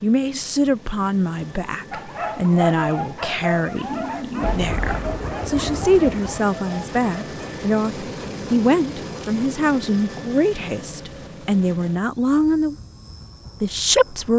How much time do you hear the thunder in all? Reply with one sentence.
You can hear the thunder for 2 seconds altogether.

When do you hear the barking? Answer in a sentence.
You can hear the barking from 1.9 to 7.5 s.